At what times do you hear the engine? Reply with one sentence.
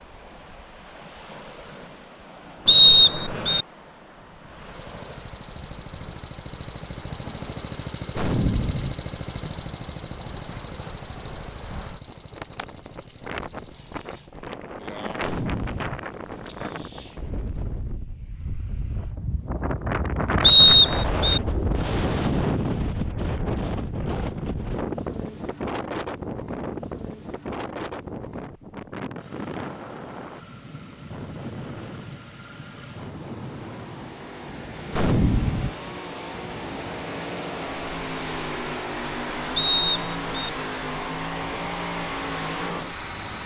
The engine can be heard from 4.7 to 14.3 s and from 29.1 to 43.4 s.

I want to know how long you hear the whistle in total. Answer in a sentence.
You can hear the whistle for 3 seconds altogether.